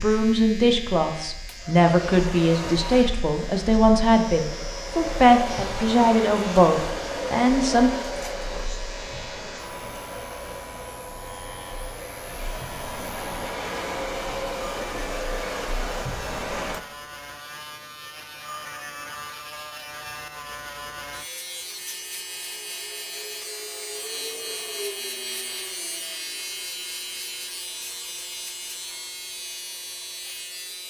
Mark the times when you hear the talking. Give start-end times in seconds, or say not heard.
0.0-7.9.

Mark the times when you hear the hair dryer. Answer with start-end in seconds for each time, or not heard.
0.0-16.8.